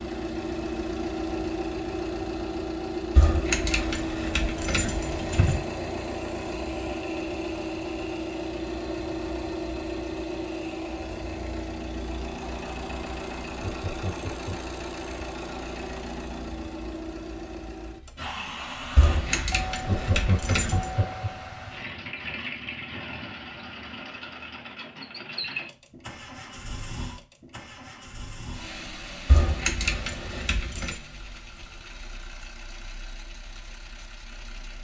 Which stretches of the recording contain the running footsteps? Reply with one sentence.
You can't hear the running footsteps here.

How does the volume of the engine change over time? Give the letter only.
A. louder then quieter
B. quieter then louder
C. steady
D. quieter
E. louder
D.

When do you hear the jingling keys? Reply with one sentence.
You can hear the jingling keys from 3.1 to 5.6 s, from 18.9 to 20.9 s and from 29.2 to 31.0 s.